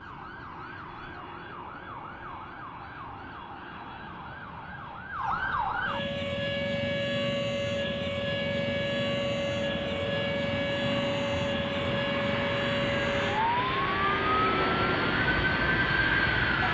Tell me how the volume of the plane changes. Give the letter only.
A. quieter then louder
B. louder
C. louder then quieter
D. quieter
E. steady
B.